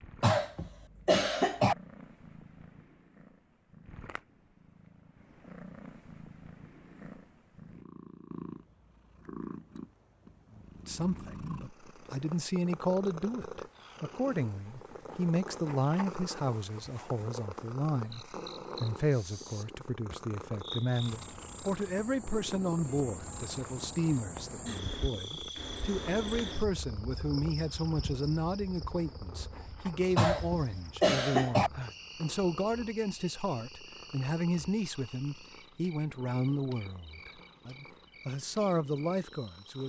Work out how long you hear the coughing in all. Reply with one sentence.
The coughing can be heard for 3 seconds in total.